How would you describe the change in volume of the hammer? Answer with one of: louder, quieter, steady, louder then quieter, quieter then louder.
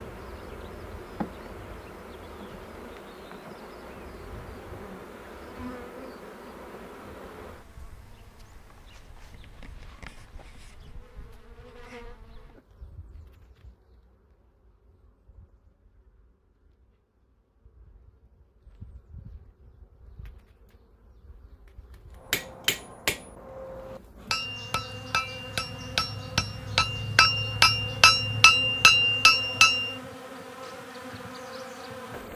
louder.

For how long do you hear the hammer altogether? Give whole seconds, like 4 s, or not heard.
8 s.